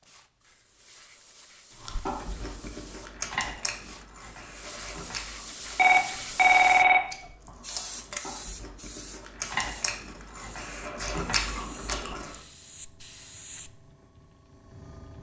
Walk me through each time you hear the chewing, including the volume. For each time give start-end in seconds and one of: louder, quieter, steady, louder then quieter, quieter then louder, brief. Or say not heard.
1.8-12.3 quieter then louder.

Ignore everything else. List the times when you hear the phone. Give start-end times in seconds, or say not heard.
5.8-7.0.